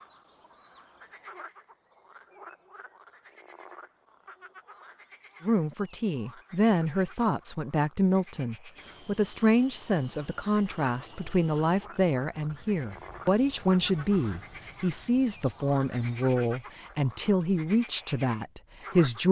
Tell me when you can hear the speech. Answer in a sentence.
The speech can be heard from 5.4 to 19.2 s.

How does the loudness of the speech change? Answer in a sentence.
The loudness of the speech stays about the same.